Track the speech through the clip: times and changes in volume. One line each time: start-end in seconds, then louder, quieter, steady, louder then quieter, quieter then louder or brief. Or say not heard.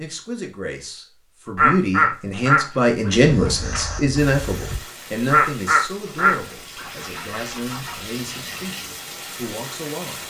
0.0-10.2 louder then quieter.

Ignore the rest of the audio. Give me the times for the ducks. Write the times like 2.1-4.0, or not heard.
1.6-3.1, 5.3-8.1.